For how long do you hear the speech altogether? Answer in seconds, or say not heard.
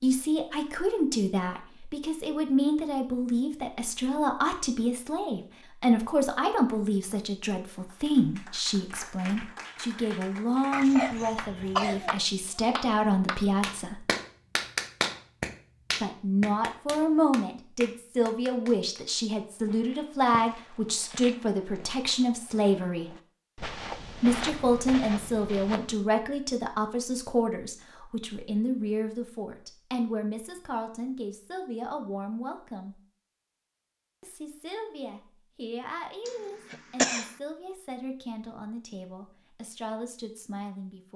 37 s.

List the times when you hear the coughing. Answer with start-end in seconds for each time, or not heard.
10.7-12.2, 36.2-37.4.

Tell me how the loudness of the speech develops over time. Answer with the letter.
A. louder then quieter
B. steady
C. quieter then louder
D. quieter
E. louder
D.